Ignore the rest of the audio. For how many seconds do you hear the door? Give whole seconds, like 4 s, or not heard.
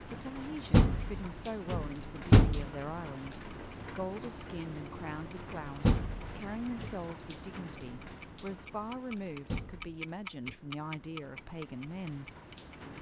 4 s.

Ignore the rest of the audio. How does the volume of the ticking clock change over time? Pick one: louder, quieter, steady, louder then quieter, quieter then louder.
louder.